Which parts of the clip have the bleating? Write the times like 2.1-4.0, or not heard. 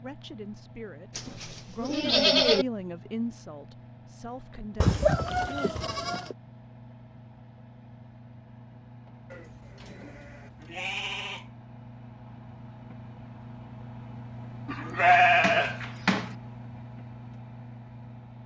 1.1-2.6, 4.8-6.3, 9.3-11.5, 14.7-16.4.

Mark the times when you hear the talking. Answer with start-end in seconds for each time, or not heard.
0.0-6.1.